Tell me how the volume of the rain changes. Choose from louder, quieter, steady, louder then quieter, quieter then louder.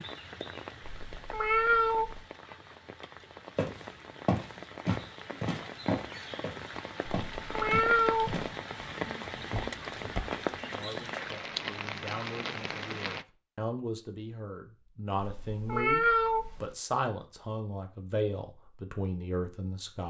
louder.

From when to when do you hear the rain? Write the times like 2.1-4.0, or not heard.
0.0-13.2.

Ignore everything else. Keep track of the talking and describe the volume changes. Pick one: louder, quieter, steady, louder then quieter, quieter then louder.
louder.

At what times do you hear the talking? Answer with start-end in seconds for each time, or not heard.
10.7-20.0.